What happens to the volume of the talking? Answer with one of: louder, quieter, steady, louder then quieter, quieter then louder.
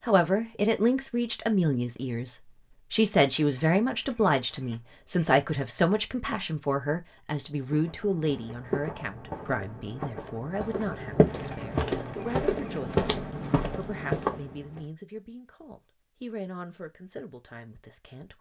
quieter.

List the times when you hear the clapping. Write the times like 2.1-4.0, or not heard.
not heard.